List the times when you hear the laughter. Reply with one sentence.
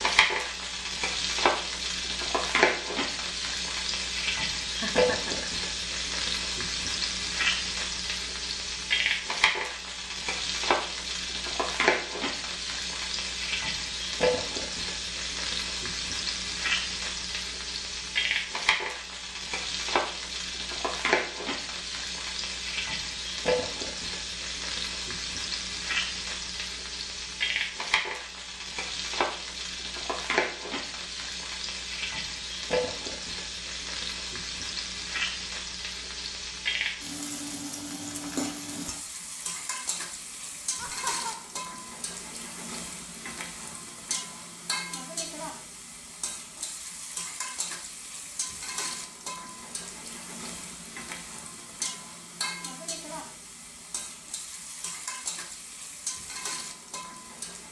You can hear the laughter from 4.7 to 5.5 s and from 40.8 to 41.5 s.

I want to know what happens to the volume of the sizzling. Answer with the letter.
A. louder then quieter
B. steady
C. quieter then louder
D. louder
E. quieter
E.